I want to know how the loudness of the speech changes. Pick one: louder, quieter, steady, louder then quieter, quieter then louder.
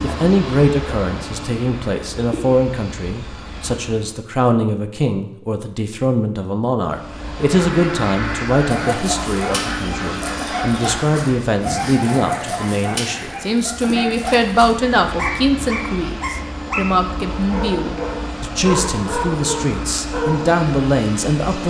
steady.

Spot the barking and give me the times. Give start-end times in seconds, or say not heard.
8.7-20.5.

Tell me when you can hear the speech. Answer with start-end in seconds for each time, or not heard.
0.0-21.6.